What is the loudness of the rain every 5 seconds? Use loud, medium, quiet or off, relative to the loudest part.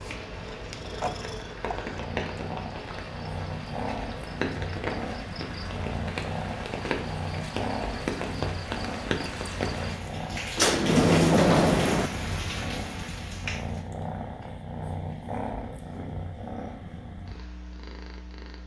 loud, loud, loud, off.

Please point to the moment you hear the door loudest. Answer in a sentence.
The volume of the door peaks at 11 seconds.